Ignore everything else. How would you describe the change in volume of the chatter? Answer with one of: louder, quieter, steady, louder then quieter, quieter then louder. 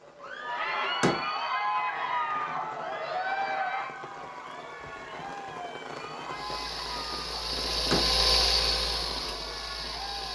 quieter.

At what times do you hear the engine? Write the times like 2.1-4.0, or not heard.
6.3-10.2.